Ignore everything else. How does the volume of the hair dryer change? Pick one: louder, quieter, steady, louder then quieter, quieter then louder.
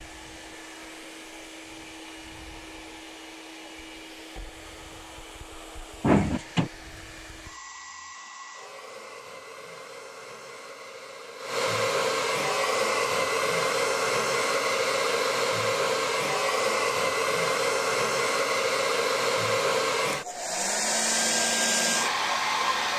louder.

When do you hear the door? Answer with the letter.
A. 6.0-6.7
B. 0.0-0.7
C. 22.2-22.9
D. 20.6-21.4
A.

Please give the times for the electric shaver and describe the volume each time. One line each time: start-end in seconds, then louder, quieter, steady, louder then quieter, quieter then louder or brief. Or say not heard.
not heard.